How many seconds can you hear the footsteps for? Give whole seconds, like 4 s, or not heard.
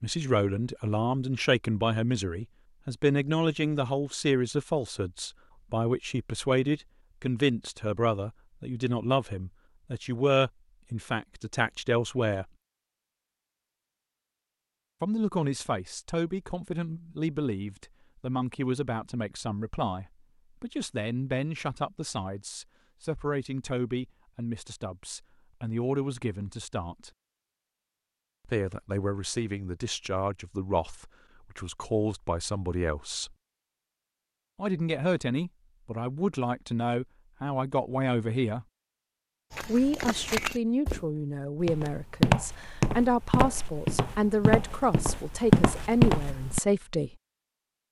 7 s.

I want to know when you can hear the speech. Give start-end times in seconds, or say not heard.
0.0-12.4, 15.0-27.1, 28.4-33.4, 34.5-38.6, 39.6-47.1.